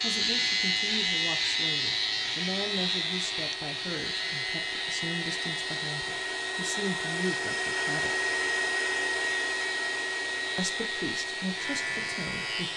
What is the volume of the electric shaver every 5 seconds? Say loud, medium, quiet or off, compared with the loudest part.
loud, medium, medium.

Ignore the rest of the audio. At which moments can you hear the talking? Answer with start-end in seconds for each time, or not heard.
0.0-8.2, 10.6-12.7.